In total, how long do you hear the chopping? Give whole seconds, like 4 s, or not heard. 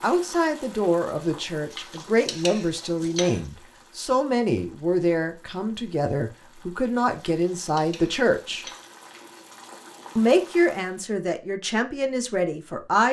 not heard.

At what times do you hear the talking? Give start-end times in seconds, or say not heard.
0.0-8.7, 10.2-13.0.